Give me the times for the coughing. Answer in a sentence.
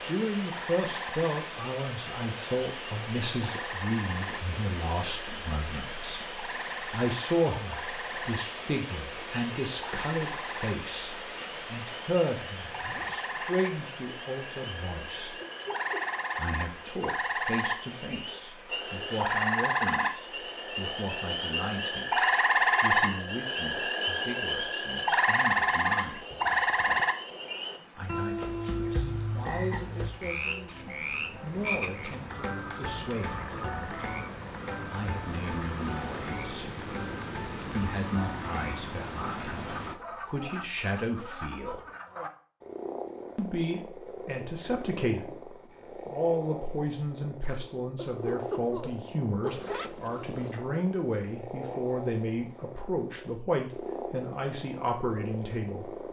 You can hear the coughing from 15.4 to 16.2 s and from 48.0 to 49.8 s.